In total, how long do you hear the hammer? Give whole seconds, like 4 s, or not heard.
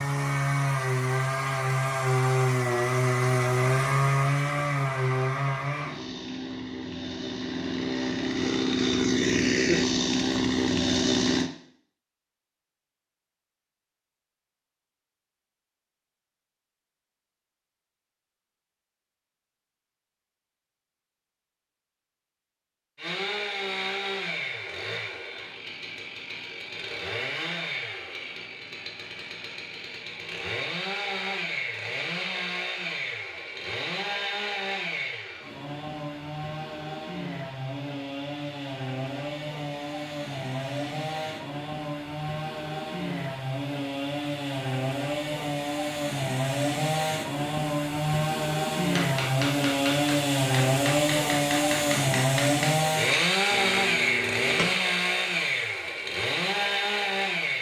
6 s.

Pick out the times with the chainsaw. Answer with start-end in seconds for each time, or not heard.
0.0-11.5, 22.9-57.5.